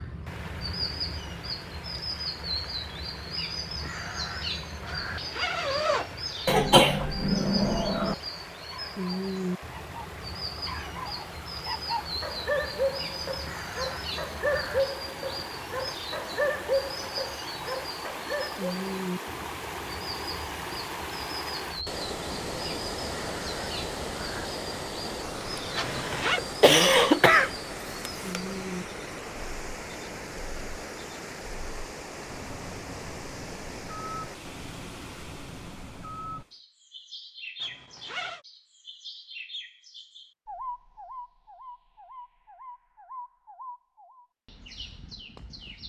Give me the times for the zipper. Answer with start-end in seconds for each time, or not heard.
5.1-6.2, 25.8-26.4, 37.6-38.4.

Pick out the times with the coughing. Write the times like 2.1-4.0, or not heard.
6.5-8.2, 25.6-27.5.